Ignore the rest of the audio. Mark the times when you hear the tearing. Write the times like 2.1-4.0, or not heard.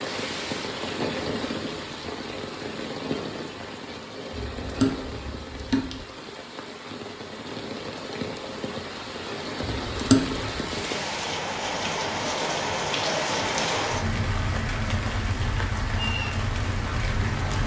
0.0-0.7, 10.7-11.3.